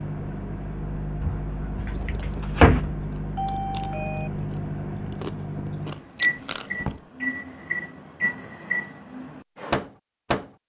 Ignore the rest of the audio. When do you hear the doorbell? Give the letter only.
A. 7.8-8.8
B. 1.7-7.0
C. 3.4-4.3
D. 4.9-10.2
C.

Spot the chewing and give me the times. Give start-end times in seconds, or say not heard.
1.7-7.0.